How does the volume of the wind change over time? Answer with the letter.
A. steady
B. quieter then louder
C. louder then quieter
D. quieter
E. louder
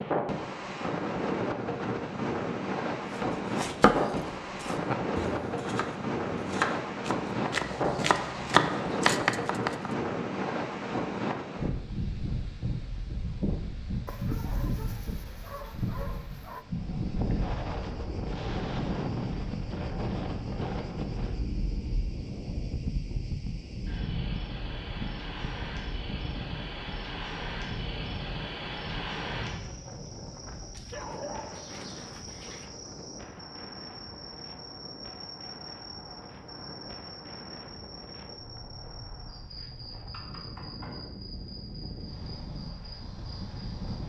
D.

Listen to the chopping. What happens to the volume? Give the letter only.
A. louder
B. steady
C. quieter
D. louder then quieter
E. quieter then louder
E.